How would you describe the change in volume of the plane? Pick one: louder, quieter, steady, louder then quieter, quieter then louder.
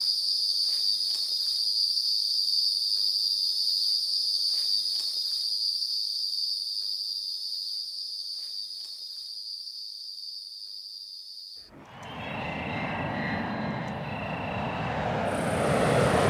louder.